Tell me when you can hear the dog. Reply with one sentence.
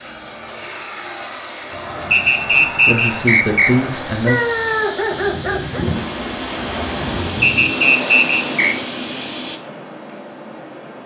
You can hear the dog from 4.2 to 5.8 s.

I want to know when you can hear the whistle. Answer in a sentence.
The whistle can be heard from 2.1 to 3.8 s and from 7.4 to 8.8 s.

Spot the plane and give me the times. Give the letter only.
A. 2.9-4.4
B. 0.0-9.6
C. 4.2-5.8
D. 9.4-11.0
B.